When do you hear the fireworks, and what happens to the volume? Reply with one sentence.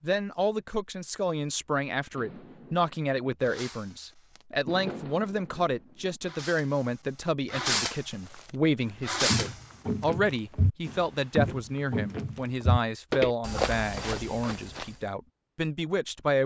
You can hear the fireworks from 2.1 to 6.8 s, getting louder then quieter; briefly from 7.5 to 8.1 s; and briefly from 9.1 to 9.7 s.